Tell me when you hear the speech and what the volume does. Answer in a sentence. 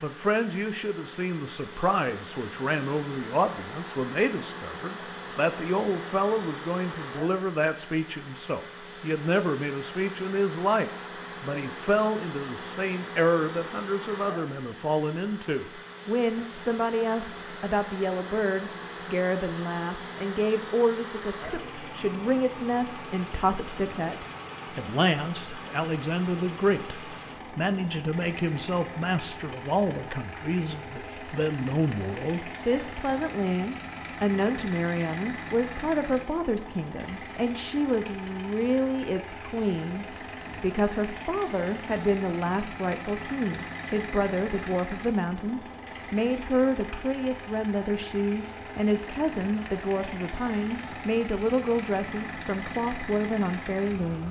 The speech can be heard from 0.0 to 54.2 s, at a steady volume.